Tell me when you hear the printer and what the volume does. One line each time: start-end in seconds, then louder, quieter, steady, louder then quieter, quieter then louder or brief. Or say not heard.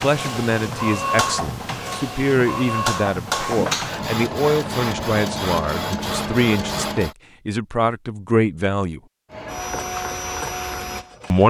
0.0-7.2 steady
9.3-11.4 brief.